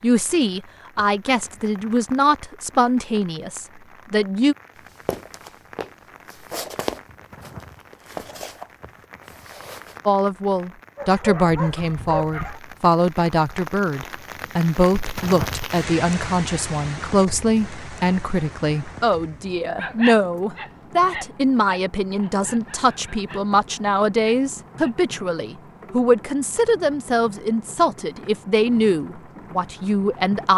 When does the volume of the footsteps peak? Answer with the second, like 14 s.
7 s.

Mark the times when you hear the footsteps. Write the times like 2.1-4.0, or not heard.
5.0-10.0.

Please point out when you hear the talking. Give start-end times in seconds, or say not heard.
0.0-4.5, 10.1-30.5.